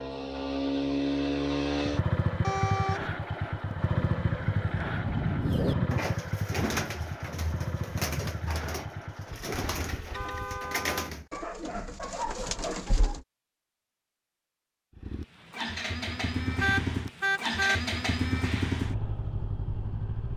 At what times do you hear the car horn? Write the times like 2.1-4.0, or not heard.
2.4-3.1, 10.1-11.1, 16.6-17.8.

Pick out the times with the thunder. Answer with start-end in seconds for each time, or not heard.
4.0-5.9.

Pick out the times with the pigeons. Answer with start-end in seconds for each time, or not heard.
5.4-13.2.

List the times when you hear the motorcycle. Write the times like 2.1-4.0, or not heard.
0.0-10.8, 14.9-20.3.